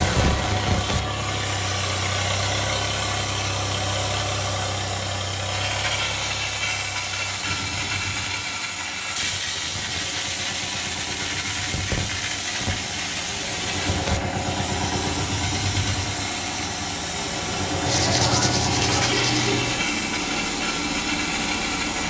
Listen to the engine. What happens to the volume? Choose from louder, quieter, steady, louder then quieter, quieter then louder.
quieter then louder.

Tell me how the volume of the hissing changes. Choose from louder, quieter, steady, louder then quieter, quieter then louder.
steady.